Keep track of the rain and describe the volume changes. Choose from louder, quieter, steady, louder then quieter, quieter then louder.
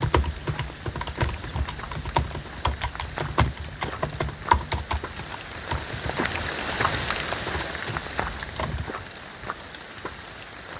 louder then quieter.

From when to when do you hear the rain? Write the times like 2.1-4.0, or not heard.
0.0-10.7.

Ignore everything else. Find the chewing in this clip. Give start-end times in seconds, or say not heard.
not heard.